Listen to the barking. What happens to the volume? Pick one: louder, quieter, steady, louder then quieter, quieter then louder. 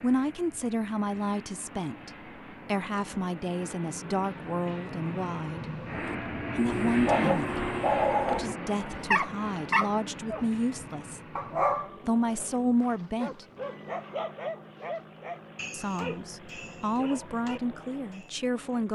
quieter.